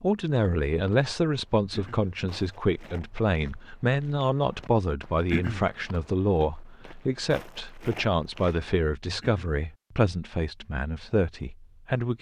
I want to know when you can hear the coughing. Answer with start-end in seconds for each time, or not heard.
1.7-2.1, 5.3-5.7, 9.2-9.6.